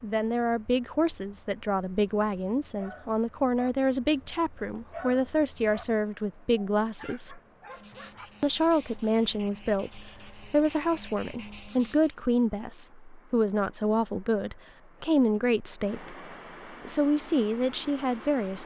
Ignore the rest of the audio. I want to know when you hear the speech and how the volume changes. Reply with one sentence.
You can hear the speech from 0.0 to 7.4 s, at a steady volume; from 8.4 to 16.1 s, at a steady volume; and briefly from 16.9 to 18.6 s.